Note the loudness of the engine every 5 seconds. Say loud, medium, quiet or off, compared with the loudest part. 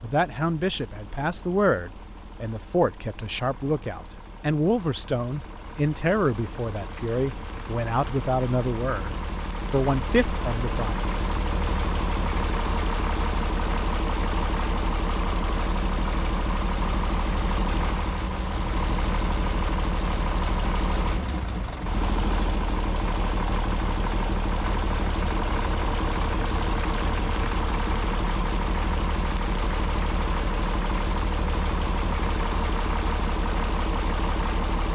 quiet, medium, loud, loud, loud, loud, loud.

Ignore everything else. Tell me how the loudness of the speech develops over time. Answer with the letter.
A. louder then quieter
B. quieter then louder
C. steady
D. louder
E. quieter
C.